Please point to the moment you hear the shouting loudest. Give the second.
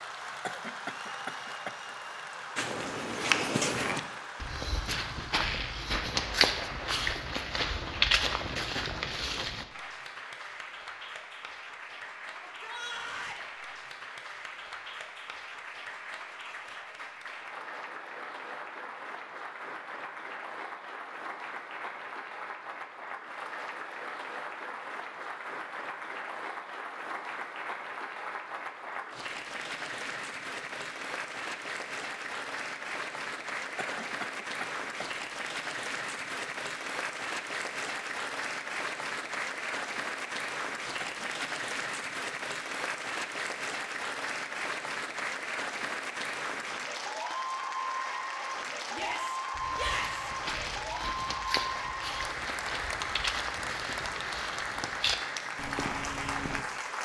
50 s.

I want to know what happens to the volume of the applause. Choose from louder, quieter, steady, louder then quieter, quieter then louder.
louder.